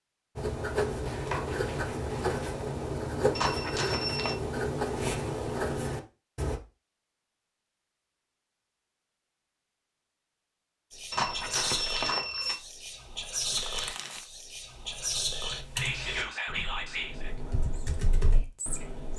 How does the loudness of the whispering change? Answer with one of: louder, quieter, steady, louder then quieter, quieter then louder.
quieter.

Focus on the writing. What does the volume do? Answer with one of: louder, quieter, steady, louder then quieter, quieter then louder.
steady.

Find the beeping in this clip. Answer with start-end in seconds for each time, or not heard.
3.4-4.3, 11.1-12.6.